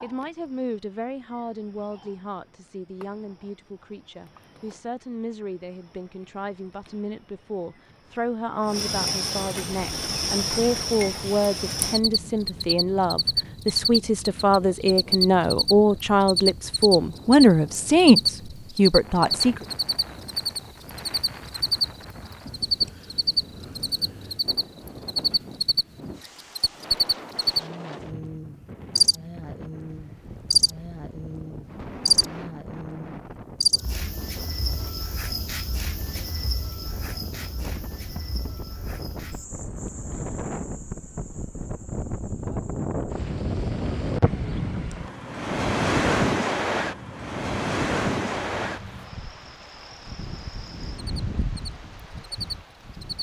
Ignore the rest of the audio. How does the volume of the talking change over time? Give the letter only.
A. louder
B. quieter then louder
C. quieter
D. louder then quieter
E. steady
A.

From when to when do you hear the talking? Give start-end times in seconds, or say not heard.
0.0-19.6.